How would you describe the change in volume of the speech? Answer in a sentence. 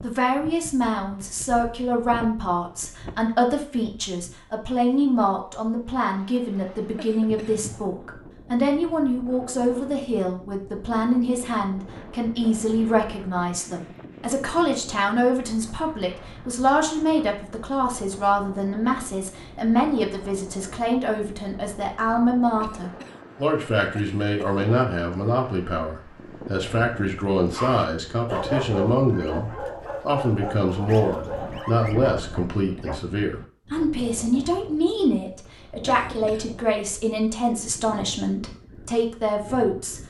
The volume of the speech stays about the same.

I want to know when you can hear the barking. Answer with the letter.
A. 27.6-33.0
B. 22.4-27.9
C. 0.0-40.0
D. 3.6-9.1
A.